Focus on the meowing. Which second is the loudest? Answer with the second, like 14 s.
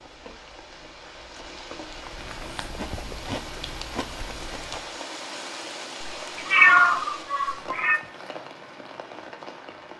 7 s.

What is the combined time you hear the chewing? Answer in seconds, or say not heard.
5 s.